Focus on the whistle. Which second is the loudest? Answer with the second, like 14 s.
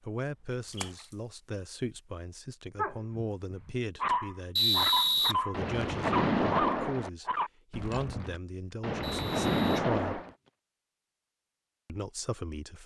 5 s.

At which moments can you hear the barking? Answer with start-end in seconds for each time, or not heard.
2.8-8.4.